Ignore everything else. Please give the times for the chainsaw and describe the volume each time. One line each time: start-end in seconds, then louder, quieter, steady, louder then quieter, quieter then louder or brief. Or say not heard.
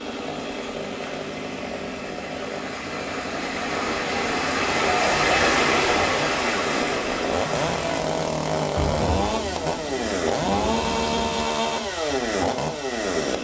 0.0-13.3 louder.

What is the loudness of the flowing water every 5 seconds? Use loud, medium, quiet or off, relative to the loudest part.
medium, loud, off.